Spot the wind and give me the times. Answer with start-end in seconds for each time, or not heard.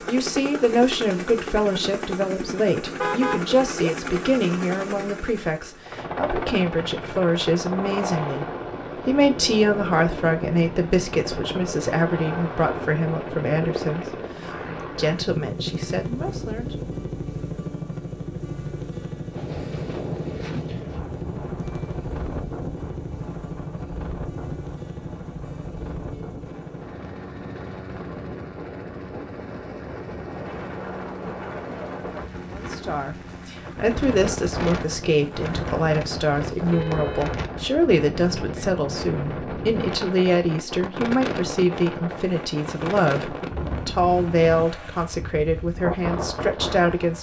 19.3-47.1.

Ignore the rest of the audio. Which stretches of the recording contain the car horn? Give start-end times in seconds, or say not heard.
3.0-3.9, 36.7-37.4.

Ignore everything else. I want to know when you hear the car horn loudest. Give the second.
3 s.